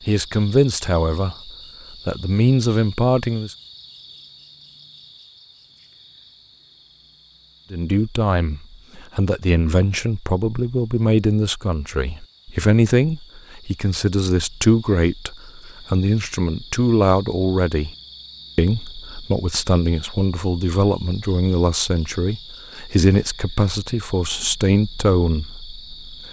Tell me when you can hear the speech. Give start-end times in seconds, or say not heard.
0.1-3.5, 7.7-17.9, 18.6-26.1.